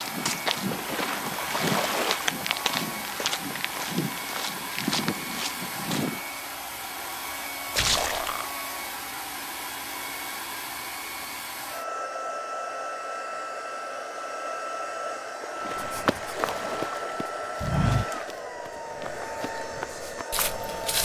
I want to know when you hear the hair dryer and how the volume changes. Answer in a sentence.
The hair dryer can be heard from 0.0 to 21.0 s, at a steady volume.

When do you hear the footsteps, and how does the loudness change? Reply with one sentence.
The footsteps can be heard from 0.0 to 6.2 s, at a steady volume; and from 15.7 to 21.0 s, getting quieter then louder.